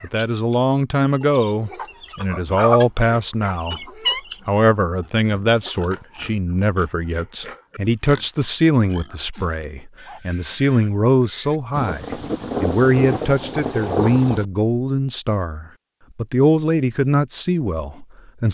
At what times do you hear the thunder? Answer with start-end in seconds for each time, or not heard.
11.7-14.4.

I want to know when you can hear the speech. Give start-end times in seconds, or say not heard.
0.0-3.9, 4.5-18.4.